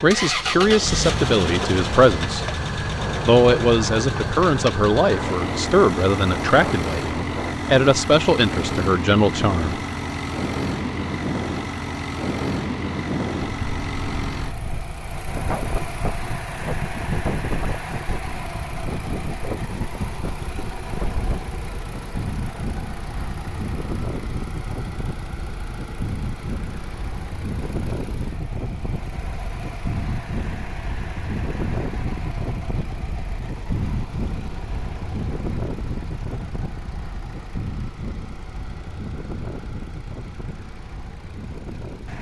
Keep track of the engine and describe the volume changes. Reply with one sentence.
The loudness of the engine goes down.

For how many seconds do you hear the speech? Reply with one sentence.
You can hear the speech for 9 seconds altogether.